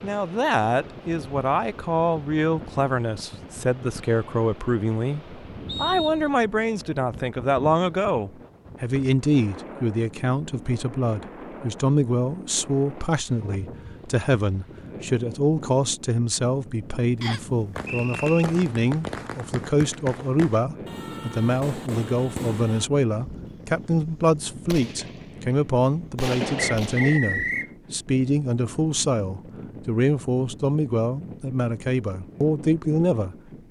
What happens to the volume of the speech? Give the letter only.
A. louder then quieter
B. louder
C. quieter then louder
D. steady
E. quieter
D.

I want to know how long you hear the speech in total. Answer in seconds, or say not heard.
33 s.